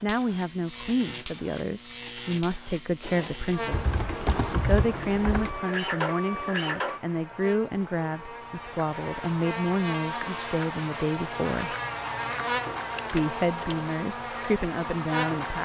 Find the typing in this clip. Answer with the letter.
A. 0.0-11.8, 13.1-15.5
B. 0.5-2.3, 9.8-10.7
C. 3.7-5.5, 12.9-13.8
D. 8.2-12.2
C.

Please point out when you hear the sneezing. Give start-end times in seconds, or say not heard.
not heard.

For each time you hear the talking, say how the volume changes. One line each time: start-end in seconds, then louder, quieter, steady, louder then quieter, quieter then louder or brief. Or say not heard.
0.0-11.8 steady
13.1-15.5 brief.